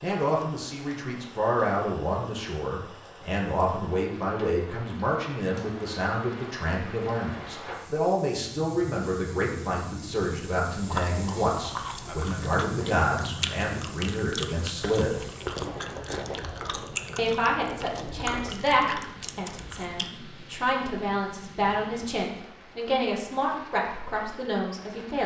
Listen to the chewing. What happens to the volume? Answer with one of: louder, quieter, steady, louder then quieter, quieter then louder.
steady.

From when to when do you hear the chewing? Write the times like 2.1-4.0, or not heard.
10.8-20.1.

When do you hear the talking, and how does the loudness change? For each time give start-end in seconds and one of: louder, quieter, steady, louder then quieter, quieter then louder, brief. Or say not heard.
0.0-15.2 steady
17.1-25.2 quieter then louder.